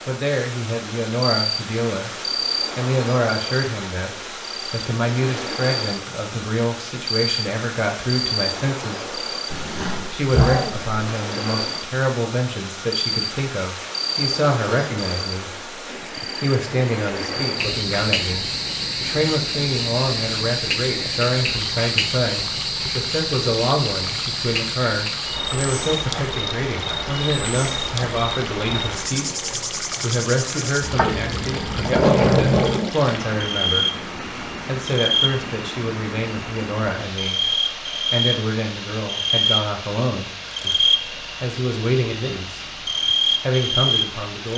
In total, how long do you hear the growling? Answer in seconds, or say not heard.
4 s.